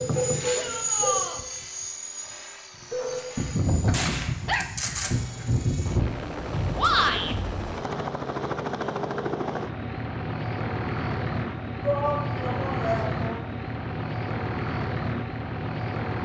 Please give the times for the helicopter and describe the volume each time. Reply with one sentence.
You can hear the helicopter from 0.0 to 16.2 s, getting quieter then louder.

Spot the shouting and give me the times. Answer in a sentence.
The shouting can be heard from 0.6 to 1.4 s, from 6.8 to 7.3 s and from 11.8 to 13.4 s.